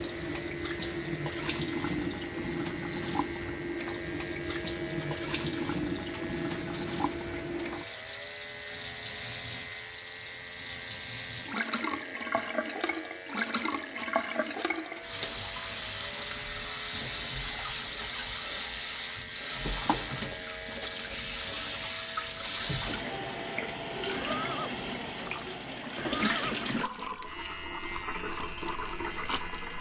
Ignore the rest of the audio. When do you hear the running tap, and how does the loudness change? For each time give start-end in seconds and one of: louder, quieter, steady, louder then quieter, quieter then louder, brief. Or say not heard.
0.0-29.7 steady.